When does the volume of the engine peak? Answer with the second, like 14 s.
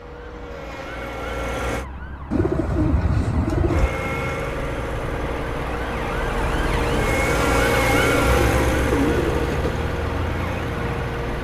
8 s.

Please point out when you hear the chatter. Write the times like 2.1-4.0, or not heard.
not heard.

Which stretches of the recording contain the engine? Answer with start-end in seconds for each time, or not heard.
0.0-1.9, 3.6-11.3.